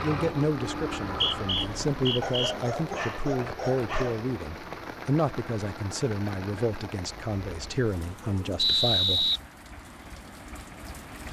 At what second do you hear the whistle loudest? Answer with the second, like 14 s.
9 s.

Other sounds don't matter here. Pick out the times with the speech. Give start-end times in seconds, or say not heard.
0.0-9.3.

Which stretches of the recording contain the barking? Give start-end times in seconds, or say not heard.
2.2-4.2.